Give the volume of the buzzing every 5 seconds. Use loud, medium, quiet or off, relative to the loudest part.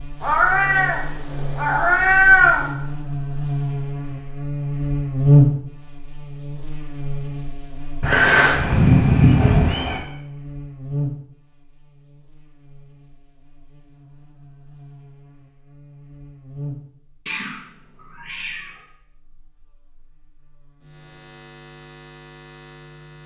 medium, loud, quiet, quiet, quiet.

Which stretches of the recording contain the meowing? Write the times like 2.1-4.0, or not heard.
0.2-2.7, 8.0-10.0, 17.2-18.8.